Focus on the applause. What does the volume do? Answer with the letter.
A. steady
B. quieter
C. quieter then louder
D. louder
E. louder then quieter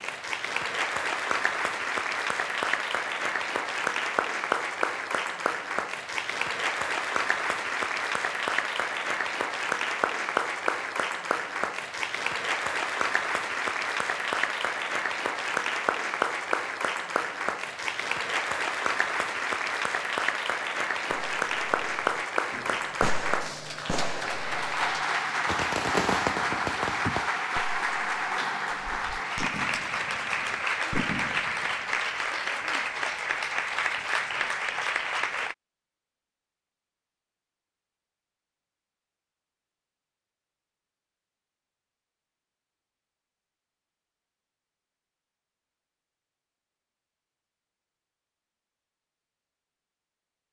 A.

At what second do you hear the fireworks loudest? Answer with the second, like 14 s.
26 s.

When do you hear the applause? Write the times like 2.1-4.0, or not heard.
0.0-35.5.